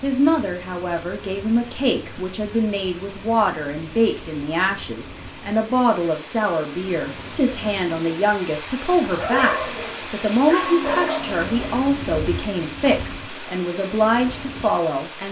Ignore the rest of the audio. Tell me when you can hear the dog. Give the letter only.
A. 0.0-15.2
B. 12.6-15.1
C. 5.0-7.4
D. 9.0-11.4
D.